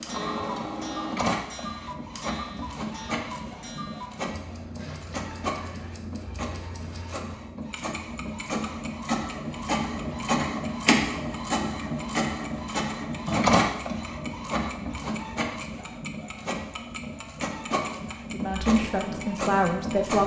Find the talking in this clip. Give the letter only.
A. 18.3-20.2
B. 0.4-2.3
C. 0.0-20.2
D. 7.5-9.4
A.